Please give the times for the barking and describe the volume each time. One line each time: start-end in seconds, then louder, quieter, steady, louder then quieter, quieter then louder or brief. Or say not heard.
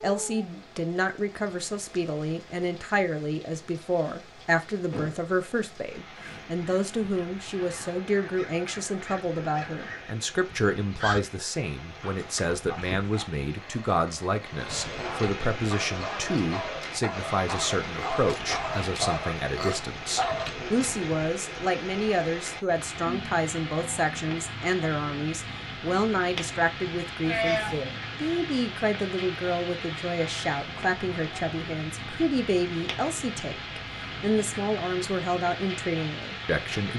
12.0-20.6 louder.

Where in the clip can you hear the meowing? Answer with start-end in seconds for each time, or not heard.
27.2-27.8.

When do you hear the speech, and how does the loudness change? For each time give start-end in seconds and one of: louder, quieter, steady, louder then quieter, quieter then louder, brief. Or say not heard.
0.0-36.9 steady.